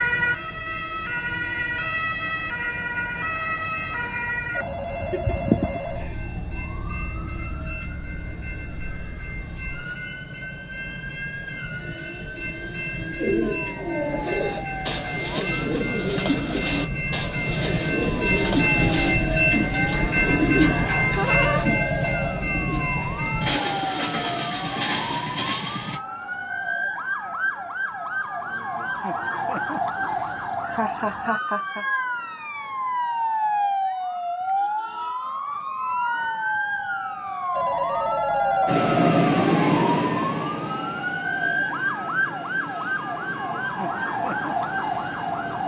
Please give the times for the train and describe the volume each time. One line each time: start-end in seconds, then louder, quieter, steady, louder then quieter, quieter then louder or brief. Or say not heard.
0.0-26.0 louder
38.6-45.6 quieter.